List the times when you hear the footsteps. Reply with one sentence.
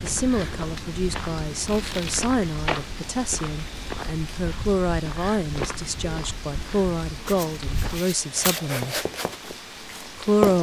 The footsteps can be heard from 0.0 to 10.5 s.